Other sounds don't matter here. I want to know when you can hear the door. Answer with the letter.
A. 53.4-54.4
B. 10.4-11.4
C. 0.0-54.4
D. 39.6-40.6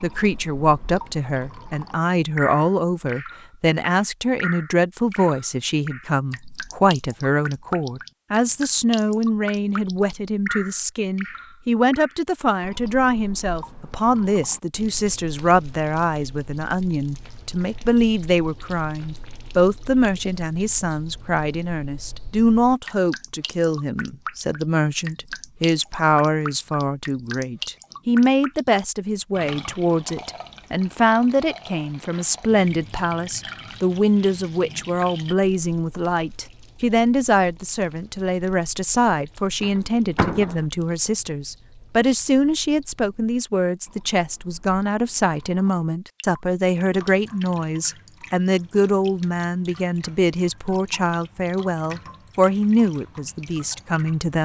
D.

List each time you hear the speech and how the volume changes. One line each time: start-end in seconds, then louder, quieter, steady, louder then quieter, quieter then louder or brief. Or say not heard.
0.0-54.4 steady.